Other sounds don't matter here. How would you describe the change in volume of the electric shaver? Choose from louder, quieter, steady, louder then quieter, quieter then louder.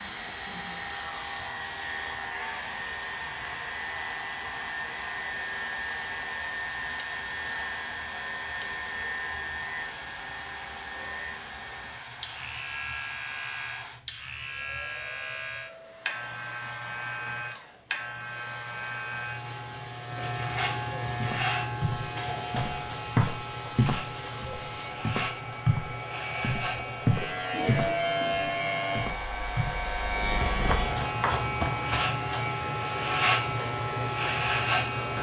louder.